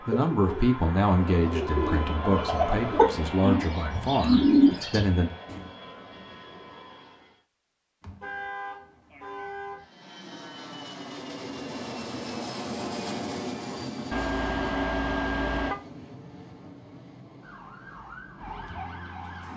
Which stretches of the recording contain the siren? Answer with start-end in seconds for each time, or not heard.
17.4-19.5.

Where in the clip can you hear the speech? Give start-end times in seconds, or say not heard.
0.0-5.3.